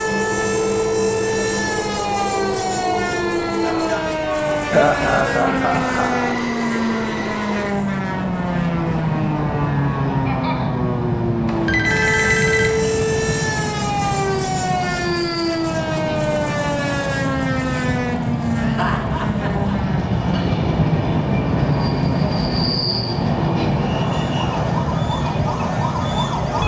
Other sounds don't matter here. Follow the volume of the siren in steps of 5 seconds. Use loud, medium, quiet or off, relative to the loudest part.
loud, loud, loud, loud, medium, loud.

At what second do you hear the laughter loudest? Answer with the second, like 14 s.
5 s.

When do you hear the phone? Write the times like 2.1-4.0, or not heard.
11.4-12.9.